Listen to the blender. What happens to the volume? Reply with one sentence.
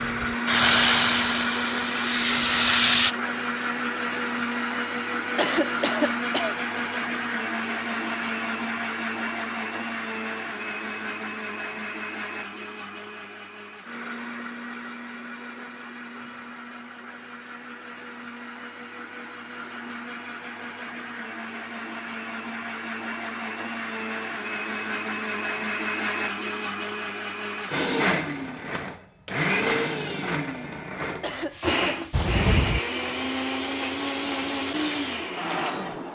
The volume of the blender goes down, then up.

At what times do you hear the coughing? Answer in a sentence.
The coughing can be heard from 5.3 to 6.5 s and from 31.2 to 32.3 s.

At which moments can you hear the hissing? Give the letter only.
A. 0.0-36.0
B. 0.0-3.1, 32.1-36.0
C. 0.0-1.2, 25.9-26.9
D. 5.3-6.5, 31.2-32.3
B.